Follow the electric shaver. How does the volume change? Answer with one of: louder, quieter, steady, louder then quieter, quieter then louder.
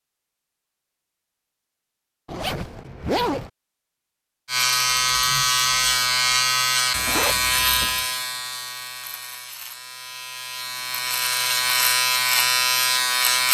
quieter then louder.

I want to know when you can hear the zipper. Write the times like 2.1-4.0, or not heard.
2.2-3.5, 7.0-8.1.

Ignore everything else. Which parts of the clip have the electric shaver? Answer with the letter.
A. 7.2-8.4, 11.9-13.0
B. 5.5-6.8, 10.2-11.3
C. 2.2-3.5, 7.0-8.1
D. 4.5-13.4
D.